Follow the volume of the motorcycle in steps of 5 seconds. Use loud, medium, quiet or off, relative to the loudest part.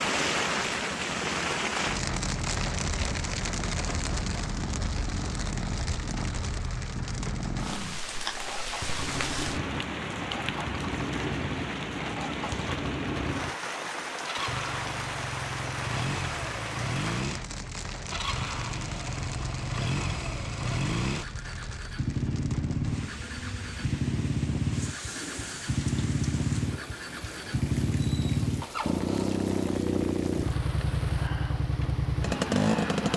quiet, medium, medium, medium, loud, loud, loud.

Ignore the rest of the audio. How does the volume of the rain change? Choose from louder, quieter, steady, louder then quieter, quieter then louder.
quieter.